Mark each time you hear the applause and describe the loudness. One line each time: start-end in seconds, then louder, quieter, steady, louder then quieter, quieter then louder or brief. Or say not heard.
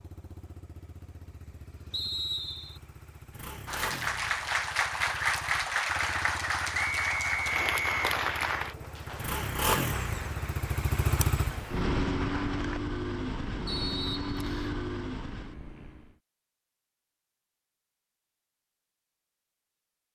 3.6-12.8 quieter.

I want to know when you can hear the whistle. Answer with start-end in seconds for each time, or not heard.
1.9-2.8, 6.7-8.0, 13.7-14.8.